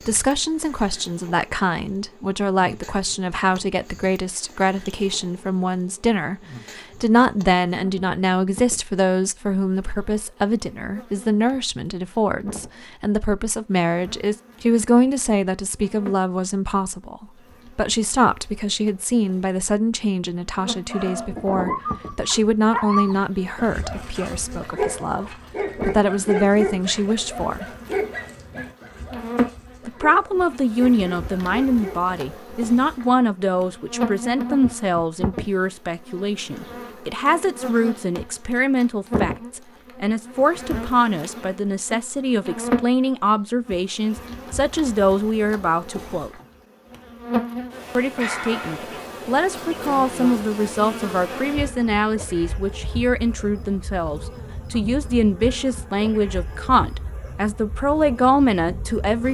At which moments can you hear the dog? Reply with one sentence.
You can hear the dog from 20.9 to 32.1 s.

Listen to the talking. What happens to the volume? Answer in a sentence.
The loudness of the talking stays about the same.